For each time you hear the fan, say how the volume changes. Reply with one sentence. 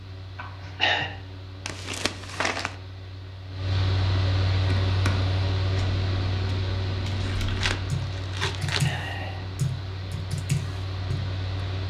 You can hear the fan from 0.0 to 11.8 s, getting louder then quieter.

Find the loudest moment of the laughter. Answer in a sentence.
The volume of the laughter peaks at 1 second.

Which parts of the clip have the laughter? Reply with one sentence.
The laughter can be heard from 0.3 to 1.1 s and from 8.7 to 9.4 s.